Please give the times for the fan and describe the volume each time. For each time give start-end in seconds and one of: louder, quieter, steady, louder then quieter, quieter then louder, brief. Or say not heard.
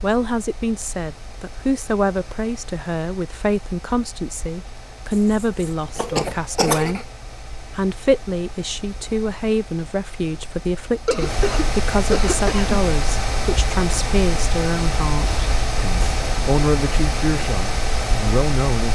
0.0-18.9 louder.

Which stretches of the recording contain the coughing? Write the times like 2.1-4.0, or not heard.
5.4-7.0, 11.1-12.8.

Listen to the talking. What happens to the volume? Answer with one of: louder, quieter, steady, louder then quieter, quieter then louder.
steady.